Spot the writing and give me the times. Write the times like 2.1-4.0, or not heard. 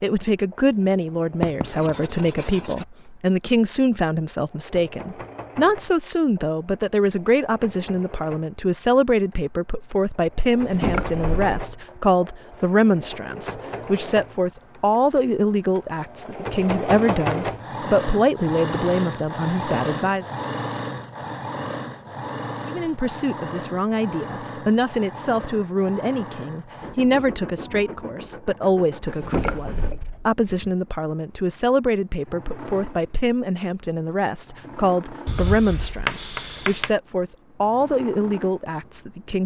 1.4-2.9, 35.2-37.0.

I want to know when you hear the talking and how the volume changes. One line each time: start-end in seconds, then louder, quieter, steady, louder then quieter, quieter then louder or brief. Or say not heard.
0.0-20.2 steady
22.6-39.4 steady.